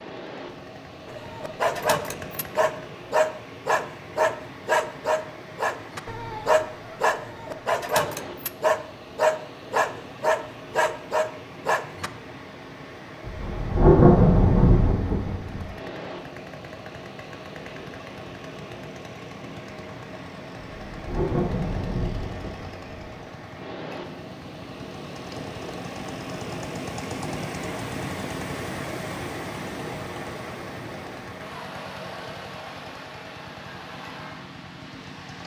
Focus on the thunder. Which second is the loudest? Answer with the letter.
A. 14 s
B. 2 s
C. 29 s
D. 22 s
A.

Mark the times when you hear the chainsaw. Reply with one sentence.
You can hear the chainsaw from 0.1 to 3.0 s and from 15.5 to 35.4 s.